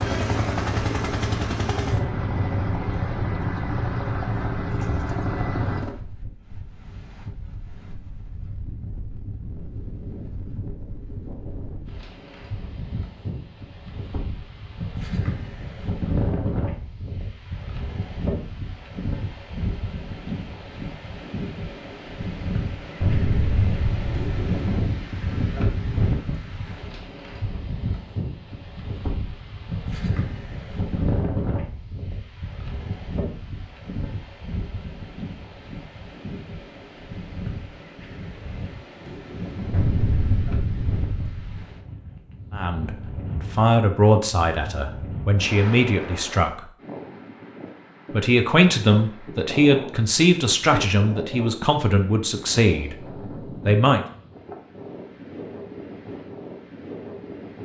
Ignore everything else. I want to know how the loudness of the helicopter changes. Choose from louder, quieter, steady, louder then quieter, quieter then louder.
steady.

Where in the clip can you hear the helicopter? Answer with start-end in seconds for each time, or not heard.
0.0-5.9.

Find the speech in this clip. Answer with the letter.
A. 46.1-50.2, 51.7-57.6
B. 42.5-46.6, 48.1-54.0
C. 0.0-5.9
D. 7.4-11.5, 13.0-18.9
B.